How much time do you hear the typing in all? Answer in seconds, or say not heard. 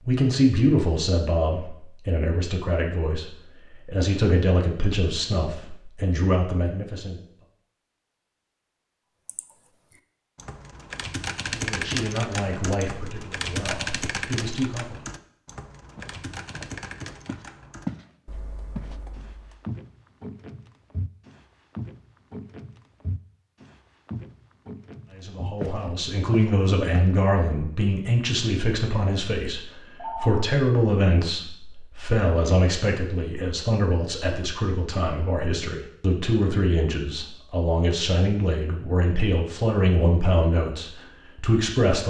10 s.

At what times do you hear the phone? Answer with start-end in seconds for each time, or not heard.
29.9-30.5.